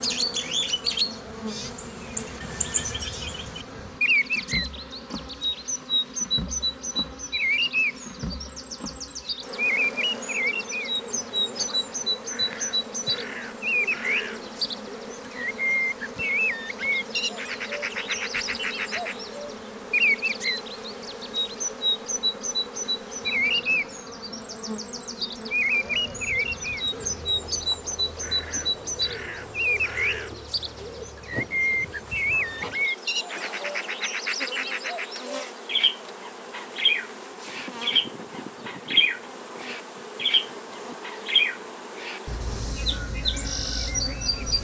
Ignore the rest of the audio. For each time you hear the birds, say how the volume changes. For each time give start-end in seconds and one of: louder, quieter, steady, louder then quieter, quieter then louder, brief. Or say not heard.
0.0-44.6 steady.